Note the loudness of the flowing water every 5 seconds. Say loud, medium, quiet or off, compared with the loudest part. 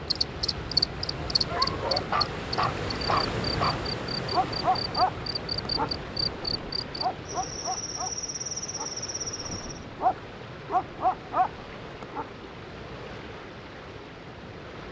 loud, medium, medium.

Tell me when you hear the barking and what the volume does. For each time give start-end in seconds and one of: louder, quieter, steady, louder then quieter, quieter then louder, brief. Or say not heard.
1.4-12.2 quieter then louder.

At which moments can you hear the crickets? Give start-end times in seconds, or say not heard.
0.0-9.8.